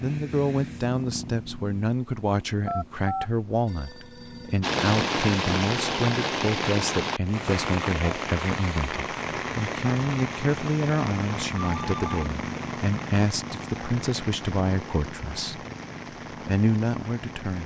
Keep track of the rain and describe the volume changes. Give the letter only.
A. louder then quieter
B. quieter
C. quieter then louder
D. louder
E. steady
B.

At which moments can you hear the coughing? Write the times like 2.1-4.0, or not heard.
not heard.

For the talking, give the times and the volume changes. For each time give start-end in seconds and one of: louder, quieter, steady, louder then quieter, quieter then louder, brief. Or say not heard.
0.0-15.6 steady
16.4-17.6 brief.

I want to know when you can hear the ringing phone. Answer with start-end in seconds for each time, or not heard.
2.6-4.6, 11.6-12.3.